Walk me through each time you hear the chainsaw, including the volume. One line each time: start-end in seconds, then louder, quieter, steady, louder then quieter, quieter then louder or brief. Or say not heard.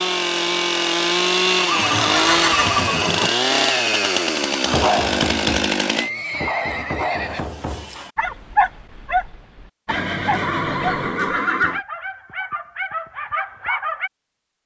0.0-6.1 steady.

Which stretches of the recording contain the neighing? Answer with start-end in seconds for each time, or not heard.
1.6-3.3, 6.0-8.0, 9.8-11.8.